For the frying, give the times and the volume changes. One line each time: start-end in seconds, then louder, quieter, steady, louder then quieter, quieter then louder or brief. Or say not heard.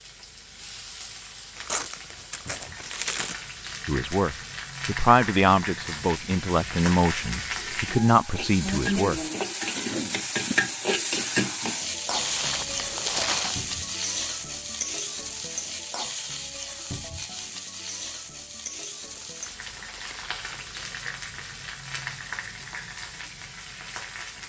0.0-24.4 louder then quieter.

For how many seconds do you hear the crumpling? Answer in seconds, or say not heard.
5 s.